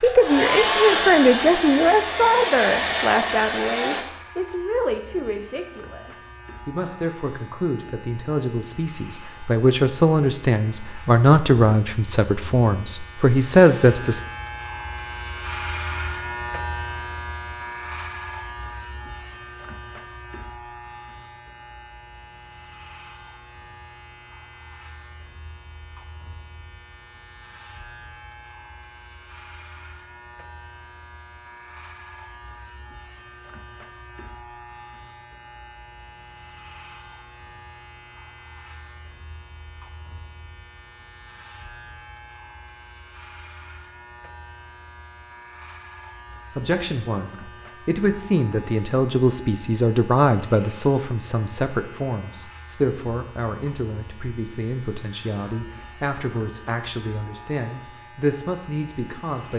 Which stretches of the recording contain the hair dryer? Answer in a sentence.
The hair dryer can be heard from 0.0 to 4.0 s.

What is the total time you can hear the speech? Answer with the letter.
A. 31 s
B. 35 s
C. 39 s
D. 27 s
D.